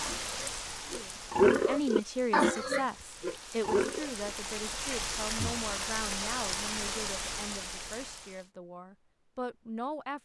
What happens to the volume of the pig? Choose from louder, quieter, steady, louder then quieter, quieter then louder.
louder then quieter.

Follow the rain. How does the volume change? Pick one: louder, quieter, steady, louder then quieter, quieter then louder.
quieter then louder.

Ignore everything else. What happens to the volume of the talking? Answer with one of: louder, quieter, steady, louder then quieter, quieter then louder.
quieter.